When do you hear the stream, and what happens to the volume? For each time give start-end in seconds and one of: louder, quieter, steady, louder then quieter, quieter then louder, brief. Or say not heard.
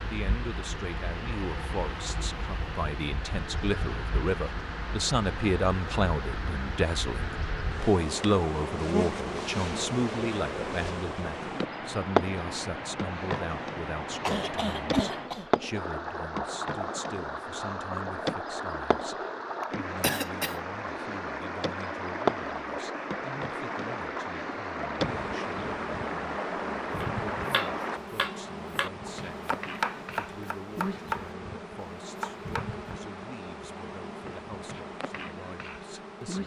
0.0-28.0 louder.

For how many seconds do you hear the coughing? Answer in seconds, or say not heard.
2 s.